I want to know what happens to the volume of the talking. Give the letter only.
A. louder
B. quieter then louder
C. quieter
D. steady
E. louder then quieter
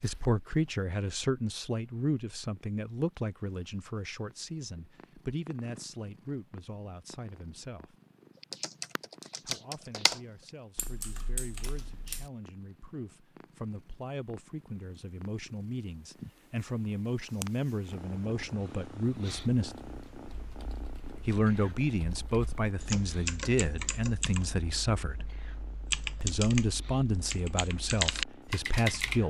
B.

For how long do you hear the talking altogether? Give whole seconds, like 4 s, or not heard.
25 s.